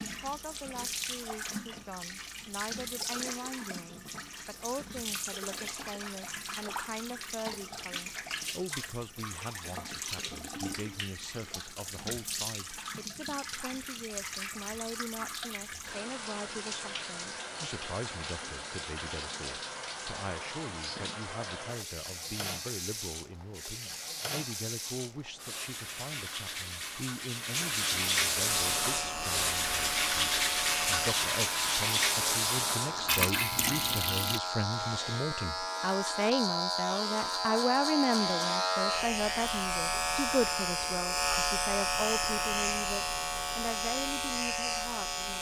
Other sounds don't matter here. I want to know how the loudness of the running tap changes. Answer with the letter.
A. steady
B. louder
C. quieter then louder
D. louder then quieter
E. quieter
B.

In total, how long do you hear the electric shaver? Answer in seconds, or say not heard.
17 s.